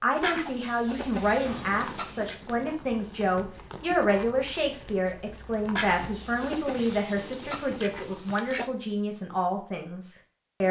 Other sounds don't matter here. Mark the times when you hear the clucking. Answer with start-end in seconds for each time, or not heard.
0.2-2.4, 5.8-8.7.